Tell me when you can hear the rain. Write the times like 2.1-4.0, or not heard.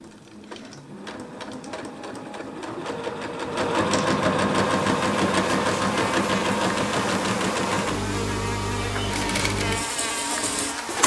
not heard.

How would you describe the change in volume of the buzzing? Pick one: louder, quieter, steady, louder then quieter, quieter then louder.
steady.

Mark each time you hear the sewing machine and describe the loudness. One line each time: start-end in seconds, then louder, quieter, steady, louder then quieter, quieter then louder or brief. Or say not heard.
0.0-11.0 louder then quieter.